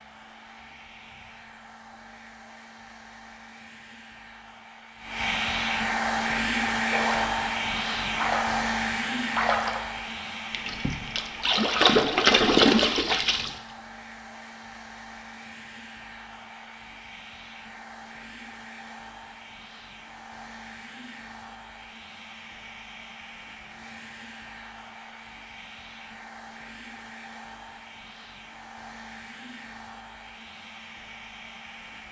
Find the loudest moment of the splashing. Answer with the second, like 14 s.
13 s.